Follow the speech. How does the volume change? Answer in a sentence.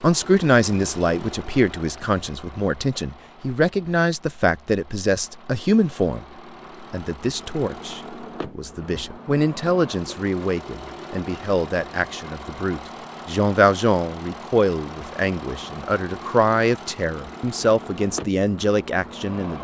The volume of the speech stays about the same.